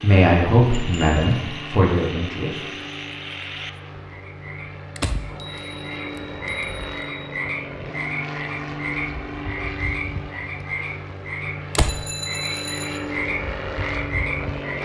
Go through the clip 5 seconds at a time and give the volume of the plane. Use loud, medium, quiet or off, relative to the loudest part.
medium, loud, loud.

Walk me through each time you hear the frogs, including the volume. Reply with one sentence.
You can hear the frogs from 0.0 to 14.8 s, getting louder.